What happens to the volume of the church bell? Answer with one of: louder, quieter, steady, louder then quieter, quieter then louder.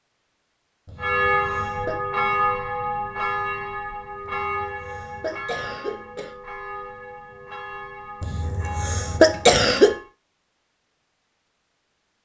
quieter.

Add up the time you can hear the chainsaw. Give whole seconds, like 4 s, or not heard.
not heard.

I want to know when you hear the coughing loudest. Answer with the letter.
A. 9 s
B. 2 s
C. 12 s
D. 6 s
A.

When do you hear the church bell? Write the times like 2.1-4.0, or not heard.
1.0-10.1.